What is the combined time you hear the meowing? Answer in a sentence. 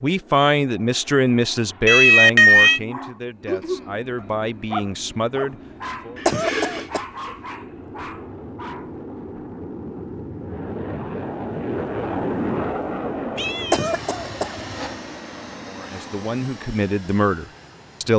You can hear the meowing for 4 seconds altogether.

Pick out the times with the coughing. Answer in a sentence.
You can hear the coughing from 6.2 to 7.0 s and from 13.7 to 14.6 s.